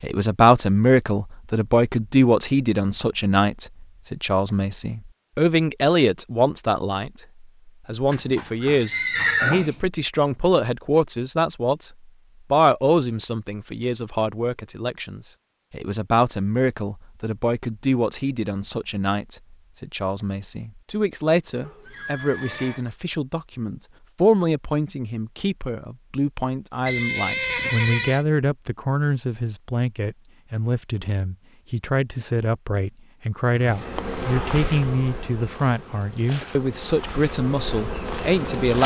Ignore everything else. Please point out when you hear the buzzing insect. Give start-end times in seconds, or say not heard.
33.5-38.8.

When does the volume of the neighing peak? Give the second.
9 s.